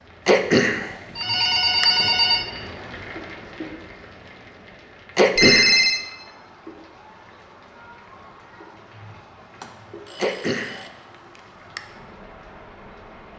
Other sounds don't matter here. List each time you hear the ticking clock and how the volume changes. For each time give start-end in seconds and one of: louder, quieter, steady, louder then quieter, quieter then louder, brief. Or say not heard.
not heard.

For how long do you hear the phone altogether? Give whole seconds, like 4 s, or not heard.
3 s.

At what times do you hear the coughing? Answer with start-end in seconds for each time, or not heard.
0.2-1.9, 5.2-5.8, 10.2-11.8.